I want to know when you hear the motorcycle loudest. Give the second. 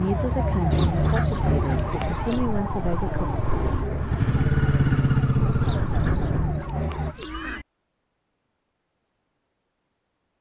5 s.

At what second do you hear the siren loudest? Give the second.
1 s.